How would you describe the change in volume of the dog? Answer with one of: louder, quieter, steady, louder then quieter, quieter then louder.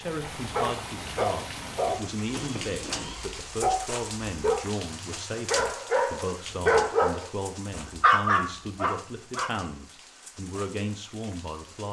louder.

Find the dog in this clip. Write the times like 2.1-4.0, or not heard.
0.3-9.5.